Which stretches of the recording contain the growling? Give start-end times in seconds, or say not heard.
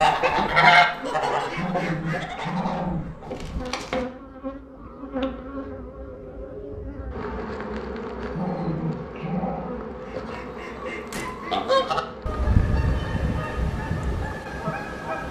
1.4-3.1, 8.2-9.8.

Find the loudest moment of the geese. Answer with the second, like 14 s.
1 s.